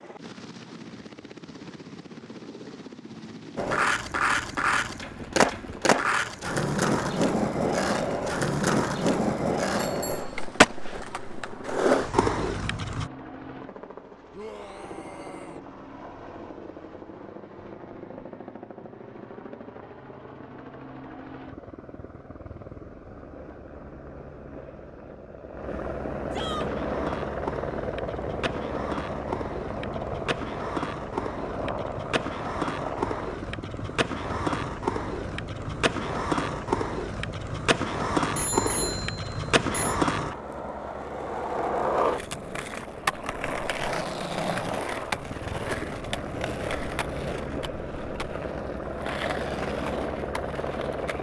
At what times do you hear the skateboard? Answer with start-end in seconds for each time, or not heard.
3.5-13.1, 26.6-51.1.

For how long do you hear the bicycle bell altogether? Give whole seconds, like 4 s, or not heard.
2 s.